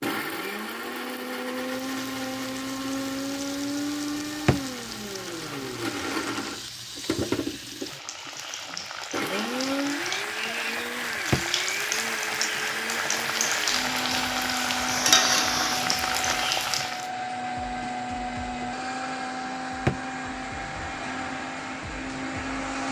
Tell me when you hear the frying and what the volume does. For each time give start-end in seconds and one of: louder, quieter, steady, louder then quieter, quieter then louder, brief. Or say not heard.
1.4-17.1 louder.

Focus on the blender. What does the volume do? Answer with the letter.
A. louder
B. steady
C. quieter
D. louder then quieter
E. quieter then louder
B.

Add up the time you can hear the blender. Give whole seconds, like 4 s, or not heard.
23 s.